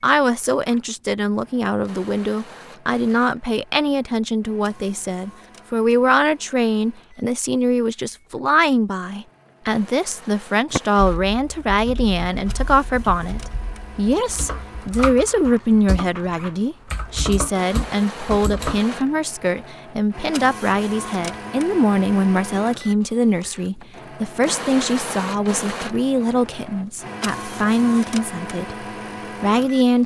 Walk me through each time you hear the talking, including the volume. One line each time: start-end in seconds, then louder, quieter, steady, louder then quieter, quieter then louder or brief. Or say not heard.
0.0-30.0 steady.